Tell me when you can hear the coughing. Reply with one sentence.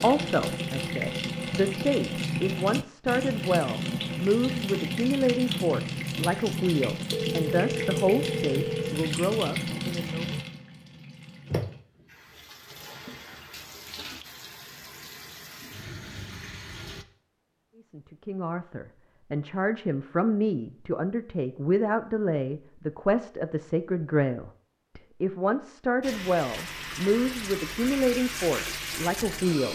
The coughing can't be heard in this clip.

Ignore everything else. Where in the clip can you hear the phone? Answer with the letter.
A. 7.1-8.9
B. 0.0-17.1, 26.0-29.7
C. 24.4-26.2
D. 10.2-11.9
A.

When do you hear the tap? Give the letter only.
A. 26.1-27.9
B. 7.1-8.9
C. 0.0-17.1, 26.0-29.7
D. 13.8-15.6
C.